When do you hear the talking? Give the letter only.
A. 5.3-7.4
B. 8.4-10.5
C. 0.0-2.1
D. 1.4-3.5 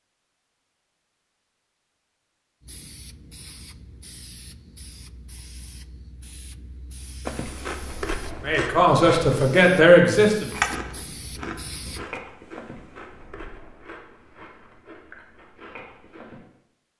B.